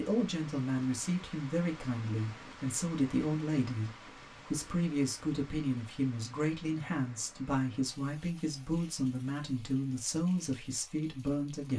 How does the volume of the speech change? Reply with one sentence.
The volume of the speech stays about the same.